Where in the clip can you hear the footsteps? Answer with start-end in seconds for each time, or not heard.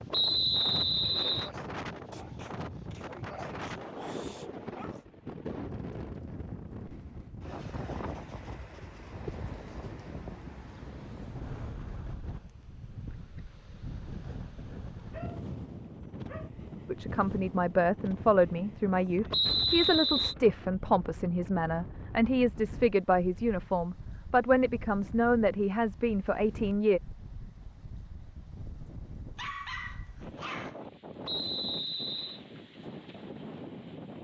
not heard.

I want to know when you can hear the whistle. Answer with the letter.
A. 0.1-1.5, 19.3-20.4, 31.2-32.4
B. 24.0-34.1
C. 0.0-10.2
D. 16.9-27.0
A.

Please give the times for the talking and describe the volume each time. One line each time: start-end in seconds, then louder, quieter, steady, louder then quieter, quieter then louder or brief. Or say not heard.
16.9-27.0 steady.